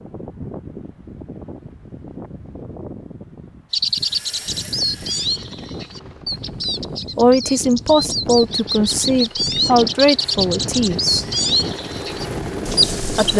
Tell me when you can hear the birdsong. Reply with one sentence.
You can hear the birdsong from 3.7 to 13.3 s.